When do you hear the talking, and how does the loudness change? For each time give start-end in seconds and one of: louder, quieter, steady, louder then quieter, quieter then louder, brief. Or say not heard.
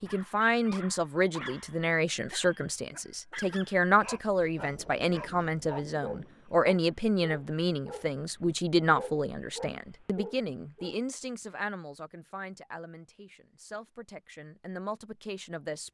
0.0-15.8 quieter.